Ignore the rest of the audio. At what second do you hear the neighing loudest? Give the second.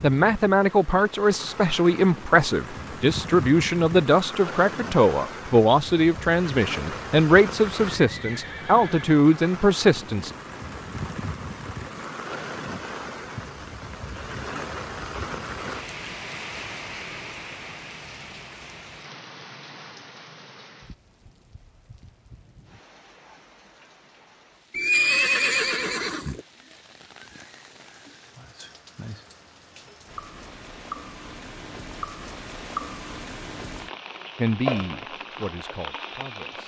25 s.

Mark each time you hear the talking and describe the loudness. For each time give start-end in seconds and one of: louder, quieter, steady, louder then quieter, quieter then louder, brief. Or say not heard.
0.0-10.3 steady
34.4-36.6 brief.